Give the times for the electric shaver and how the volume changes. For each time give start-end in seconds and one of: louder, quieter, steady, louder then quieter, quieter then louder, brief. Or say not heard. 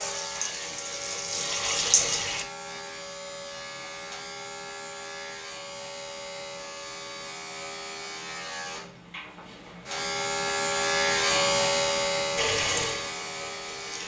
0.0-14.0 louder.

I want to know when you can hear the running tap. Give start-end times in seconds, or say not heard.
0.0-2.5, 12.3-14.0.